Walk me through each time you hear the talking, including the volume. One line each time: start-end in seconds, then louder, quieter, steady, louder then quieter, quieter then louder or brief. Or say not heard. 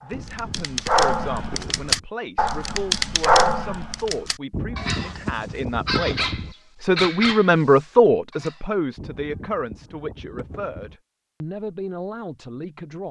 0.0-13.0 louder then quieter.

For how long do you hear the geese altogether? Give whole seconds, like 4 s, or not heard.
6 s.